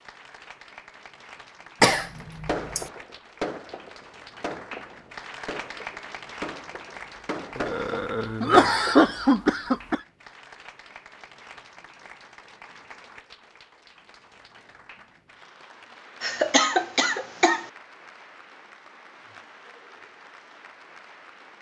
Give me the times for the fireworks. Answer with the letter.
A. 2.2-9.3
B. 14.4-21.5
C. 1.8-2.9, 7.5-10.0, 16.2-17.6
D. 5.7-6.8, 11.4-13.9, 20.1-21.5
A.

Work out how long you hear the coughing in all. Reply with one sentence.
You can hear the coughing for 5 seconds altogether.